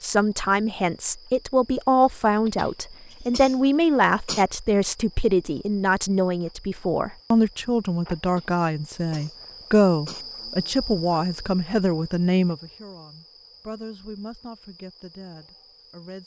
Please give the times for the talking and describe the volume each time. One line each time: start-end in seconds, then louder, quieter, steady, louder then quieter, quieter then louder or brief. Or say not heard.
0.0-16.2 quieter.